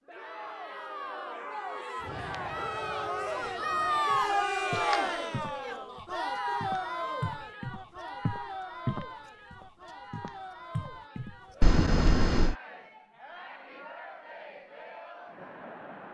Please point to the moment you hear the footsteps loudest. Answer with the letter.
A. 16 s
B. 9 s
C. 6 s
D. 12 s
B.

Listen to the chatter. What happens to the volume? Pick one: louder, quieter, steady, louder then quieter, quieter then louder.
louder then quieter.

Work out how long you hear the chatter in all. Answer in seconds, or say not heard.
16 s.